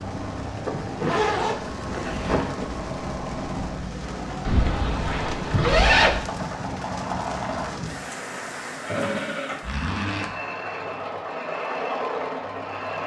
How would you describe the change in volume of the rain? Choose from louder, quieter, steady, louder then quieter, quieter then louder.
steady.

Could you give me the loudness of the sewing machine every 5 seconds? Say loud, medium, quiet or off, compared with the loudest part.
medium, loud, loud.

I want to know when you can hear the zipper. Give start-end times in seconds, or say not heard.
0.7-2.6, 4.5-6.2, 9.6-10.3.